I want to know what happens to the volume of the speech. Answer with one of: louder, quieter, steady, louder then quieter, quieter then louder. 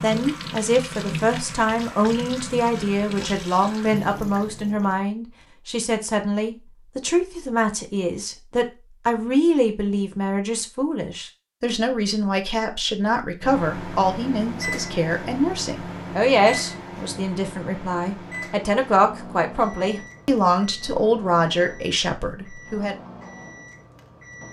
steady.